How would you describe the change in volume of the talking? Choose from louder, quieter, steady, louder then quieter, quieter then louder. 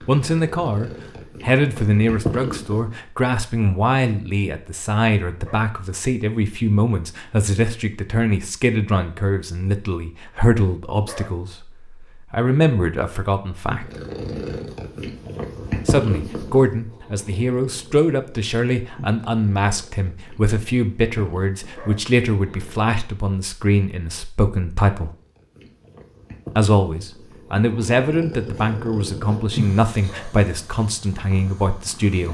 steady.